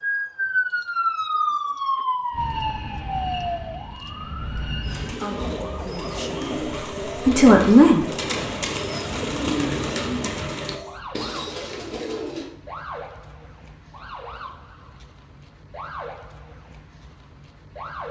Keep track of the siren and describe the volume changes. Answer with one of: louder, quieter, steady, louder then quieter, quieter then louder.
quieter.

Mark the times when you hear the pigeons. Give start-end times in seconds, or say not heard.
4.8-12.5.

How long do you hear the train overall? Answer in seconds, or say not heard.
3 s.